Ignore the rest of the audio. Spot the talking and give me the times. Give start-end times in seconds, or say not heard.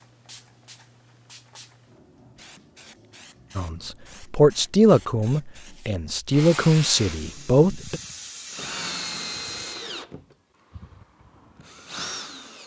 3.5-8.0.